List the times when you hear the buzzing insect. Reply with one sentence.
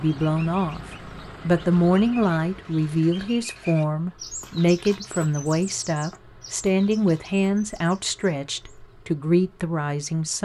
You can't hear the buzzing insect here.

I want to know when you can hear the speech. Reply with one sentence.
You can hear the speech from 0.0 to 0.8 s and from 1.4 to 10.4 s.